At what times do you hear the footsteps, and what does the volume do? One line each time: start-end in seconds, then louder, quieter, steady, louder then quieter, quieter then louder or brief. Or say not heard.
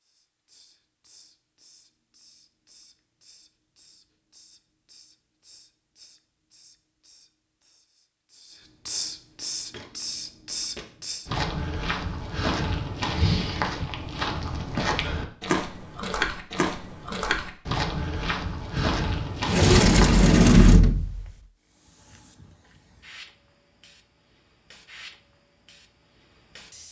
9.7-20.1 steady.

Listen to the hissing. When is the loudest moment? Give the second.
9 s.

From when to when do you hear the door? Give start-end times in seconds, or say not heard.
18.8-21.4.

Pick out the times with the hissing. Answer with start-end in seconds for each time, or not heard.
0.0-11.3, 21.6-26.8.